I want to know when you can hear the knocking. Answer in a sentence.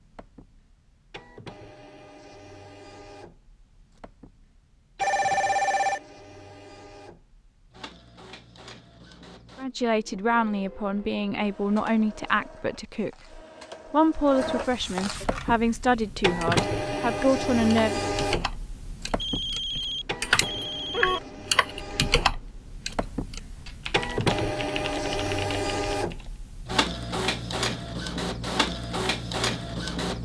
You can't hear the knocking here.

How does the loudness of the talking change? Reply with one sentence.
The loudness of the talking stays about the same.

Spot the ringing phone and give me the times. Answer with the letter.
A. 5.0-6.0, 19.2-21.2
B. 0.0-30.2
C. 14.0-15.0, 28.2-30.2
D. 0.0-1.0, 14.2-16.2
A.